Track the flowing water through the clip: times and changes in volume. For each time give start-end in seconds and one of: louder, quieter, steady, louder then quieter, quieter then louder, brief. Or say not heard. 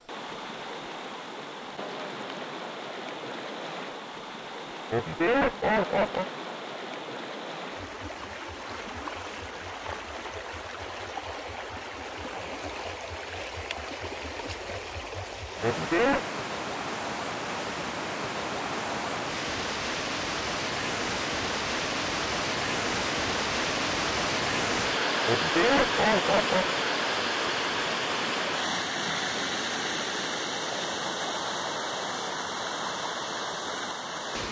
0.0-34.4 louder.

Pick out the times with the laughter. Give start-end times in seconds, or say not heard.
4.9-6.2, 15.6-16.2, 25.2-26.8.